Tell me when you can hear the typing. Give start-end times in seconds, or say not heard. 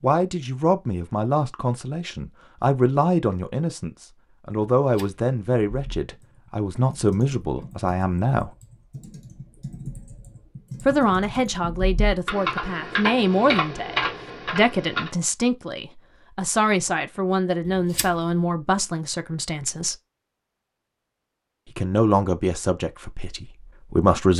5.7-15.1.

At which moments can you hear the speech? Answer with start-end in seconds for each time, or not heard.
0.0-8.5, 10.8-19.9, 21.8-24.3.